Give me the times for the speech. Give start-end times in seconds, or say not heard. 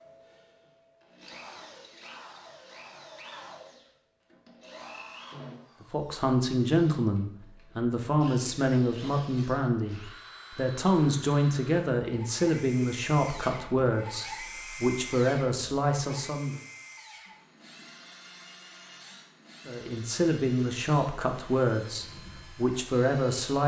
5.8-16.6, 19.6-23.6.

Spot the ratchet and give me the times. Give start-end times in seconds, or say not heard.
not heard.